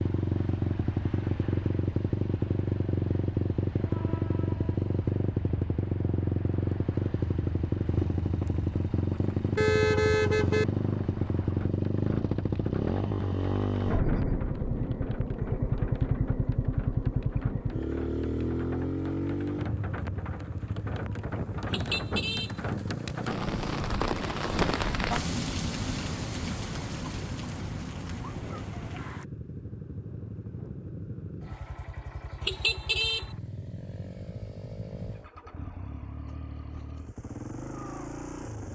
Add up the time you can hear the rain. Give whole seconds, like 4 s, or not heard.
29 s.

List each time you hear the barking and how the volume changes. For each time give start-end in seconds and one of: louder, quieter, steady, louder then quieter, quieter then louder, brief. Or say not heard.
not heard.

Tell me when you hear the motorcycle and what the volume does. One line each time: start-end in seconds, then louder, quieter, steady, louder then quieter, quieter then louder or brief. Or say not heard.
0.0-38.7 quieter.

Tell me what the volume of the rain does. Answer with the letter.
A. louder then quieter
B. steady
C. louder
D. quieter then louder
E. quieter
C.